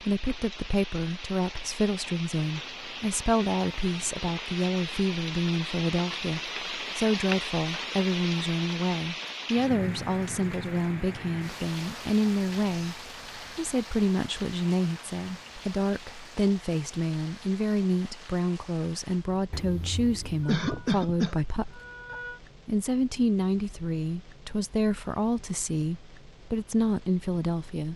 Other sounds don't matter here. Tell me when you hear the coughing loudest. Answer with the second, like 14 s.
21 s.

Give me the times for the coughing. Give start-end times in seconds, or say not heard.
20.4-22.4.